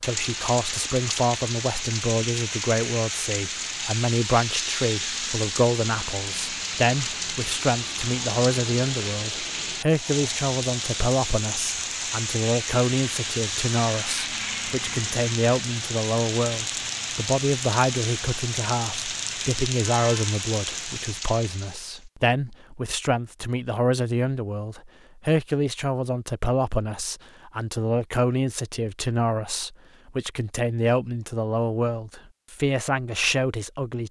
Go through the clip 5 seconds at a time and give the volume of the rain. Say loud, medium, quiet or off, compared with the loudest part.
loud, loud, loud, loud, loud, off, off.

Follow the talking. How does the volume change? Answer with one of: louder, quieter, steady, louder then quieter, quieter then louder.
steady.